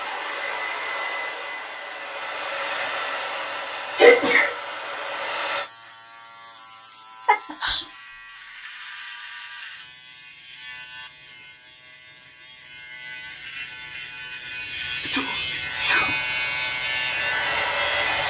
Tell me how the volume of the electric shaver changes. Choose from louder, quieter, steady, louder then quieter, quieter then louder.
louder.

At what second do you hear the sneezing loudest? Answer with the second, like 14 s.
4 s.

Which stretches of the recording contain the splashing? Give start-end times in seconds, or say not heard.
not heard.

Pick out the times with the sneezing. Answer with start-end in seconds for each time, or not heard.
4.0-4.5, 7.2-7.8, 15.0-16.1.